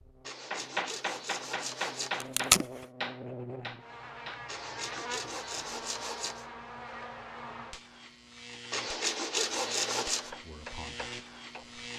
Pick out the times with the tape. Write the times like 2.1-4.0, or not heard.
2.2-2.6.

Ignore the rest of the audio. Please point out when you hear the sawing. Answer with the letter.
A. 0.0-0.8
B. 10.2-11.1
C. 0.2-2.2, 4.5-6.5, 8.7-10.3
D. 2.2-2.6
C.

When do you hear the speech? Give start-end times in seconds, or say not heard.
10.2-11.1.